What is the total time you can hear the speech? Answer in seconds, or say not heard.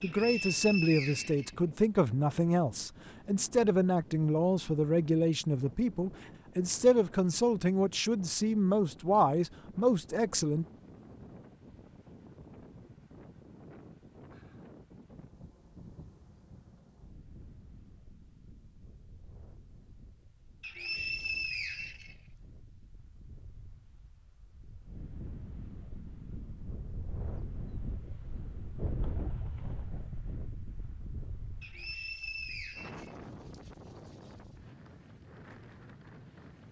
11 s.